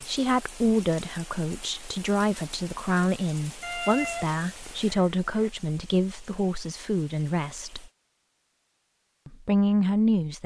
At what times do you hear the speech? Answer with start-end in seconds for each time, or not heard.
0.0-7.8, 9.2-10.4.